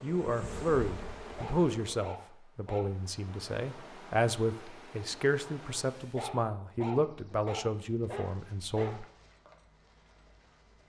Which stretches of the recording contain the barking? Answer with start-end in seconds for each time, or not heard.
1.4-2.9, 6.2-8.9.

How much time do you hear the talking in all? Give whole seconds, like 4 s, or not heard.
9 s.